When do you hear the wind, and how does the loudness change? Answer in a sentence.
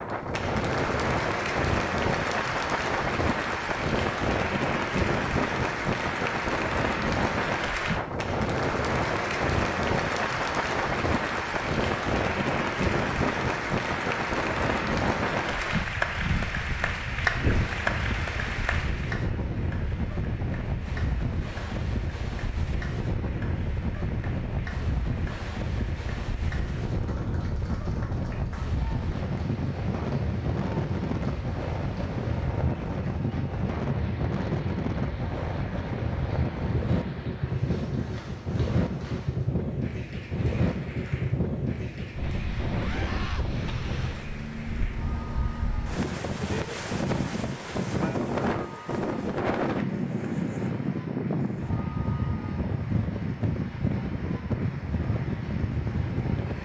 The wind can be heard from 0.0 to 56.6 s, at a steady volume.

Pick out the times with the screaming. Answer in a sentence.
The screaming can be heard from 42.8 to 43.5 s.